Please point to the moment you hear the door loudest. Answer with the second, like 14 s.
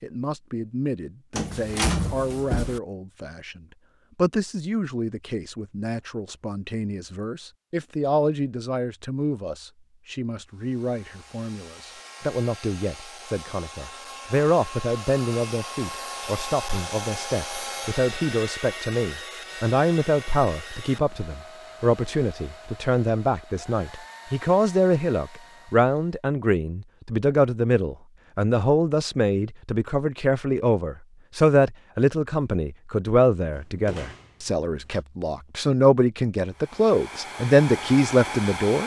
2 s.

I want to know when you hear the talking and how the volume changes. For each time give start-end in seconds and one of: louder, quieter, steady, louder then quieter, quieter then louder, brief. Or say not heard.
0.0-38.8 louder.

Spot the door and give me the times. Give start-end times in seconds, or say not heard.
1.4-2.8, 33.5-35.0.